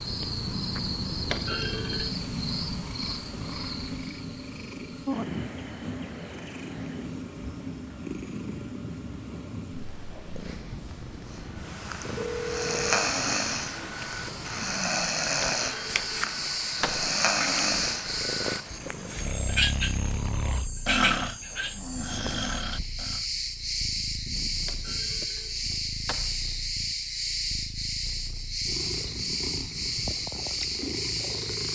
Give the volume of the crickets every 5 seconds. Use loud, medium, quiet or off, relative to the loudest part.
loud, medium, quiet, loud, loud, loud, loud.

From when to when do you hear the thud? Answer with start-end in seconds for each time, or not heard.
1.2-2.1, 15.4-17.1, 24.6-26.4.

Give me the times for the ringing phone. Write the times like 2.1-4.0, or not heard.
12.2-13.1.